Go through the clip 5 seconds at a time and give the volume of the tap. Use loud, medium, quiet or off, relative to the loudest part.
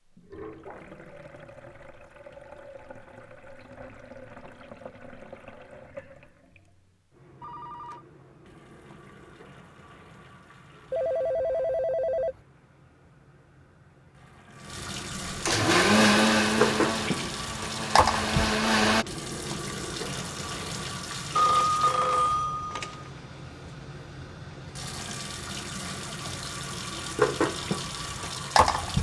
quiet, quiet, quiet, loud, medium, loud.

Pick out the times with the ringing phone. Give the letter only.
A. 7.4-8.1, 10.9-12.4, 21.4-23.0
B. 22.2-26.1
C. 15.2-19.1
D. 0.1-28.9
A.